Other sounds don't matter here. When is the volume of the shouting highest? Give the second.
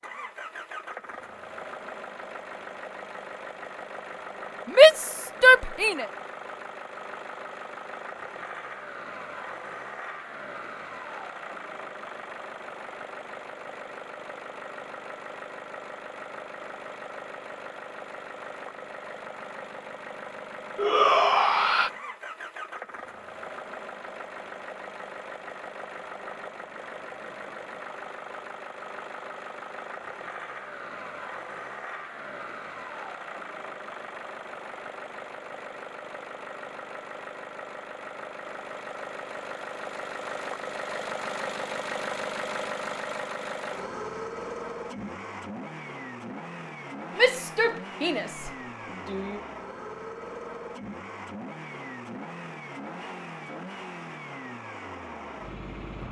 5 s.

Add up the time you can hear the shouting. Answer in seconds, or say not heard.
5 s.